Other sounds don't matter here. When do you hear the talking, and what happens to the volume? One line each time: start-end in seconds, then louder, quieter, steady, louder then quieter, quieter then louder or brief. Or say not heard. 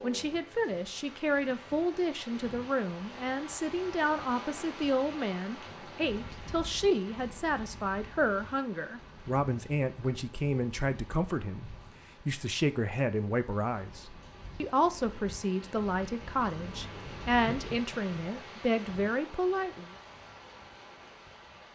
0.0-19.9 steady.